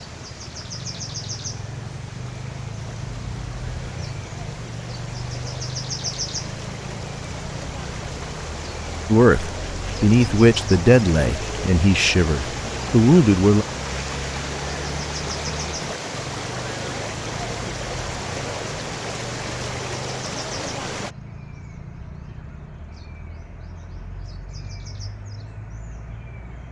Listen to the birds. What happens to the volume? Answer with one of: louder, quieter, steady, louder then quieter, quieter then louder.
quieter.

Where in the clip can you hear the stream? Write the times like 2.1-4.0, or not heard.
0.0-21.1.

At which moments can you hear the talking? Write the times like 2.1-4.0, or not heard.
9.1-13.7.